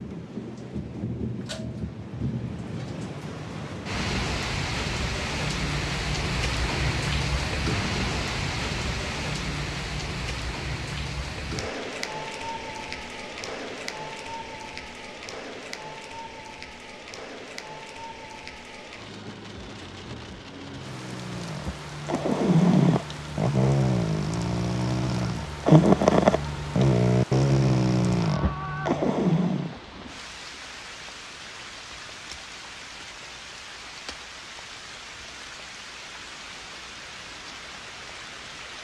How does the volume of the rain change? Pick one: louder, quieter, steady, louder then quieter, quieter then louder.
quieter.